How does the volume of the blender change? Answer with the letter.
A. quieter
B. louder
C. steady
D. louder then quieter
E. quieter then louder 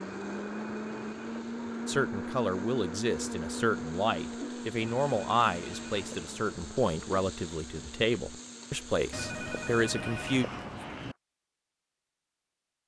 A.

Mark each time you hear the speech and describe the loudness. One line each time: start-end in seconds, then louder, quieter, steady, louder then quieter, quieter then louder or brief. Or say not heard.
1.9-10.4 steady.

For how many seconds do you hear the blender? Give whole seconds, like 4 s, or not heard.
11 s.